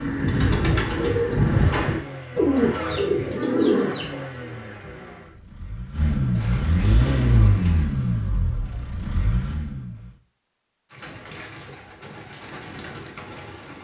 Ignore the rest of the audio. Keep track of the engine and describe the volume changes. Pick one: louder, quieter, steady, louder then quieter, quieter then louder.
louder then quieter.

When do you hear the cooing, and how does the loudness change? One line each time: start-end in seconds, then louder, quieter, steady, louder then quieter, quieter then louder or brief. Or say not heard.
0.0-4.2 steady
6.0-7.9 brief
10.9-13.7 brief.